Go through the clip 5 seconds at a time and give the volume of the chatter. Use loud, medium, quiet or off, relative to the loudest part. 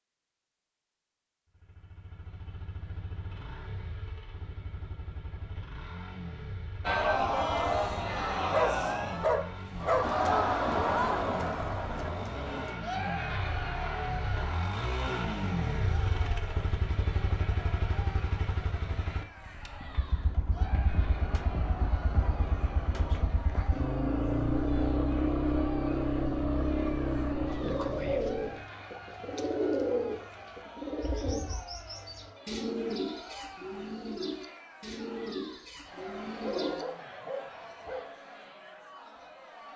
off, loud, loud, quiet, quiet, quiet, quiet, quiet.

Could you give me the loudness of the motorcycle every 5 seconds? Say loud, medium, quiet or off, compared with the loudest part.
quiet, quiet, medium, medium, loud, loud, off, off.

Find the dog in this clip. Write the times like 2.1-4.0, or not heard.
8.4-10.1, 36.4-38.0.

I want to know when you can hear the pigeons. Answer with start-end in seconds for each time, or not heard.
27.4-36.9.